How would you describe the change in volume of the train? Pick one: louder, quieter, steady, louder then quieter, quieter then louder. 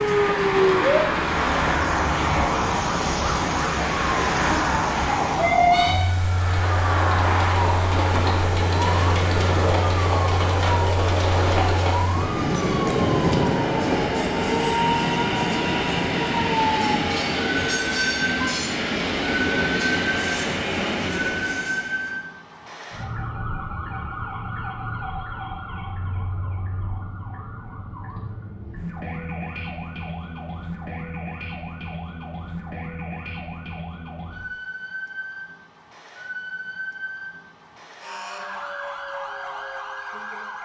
steady.